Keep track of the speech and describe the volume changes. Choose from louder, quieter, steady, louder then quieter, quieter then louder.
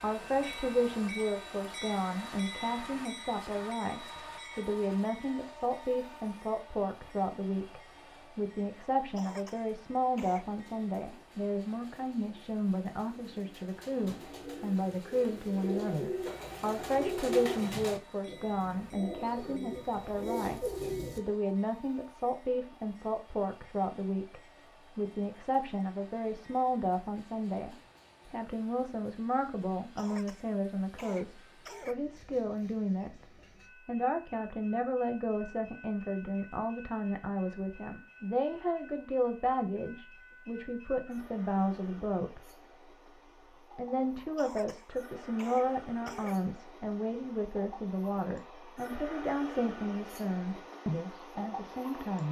steady.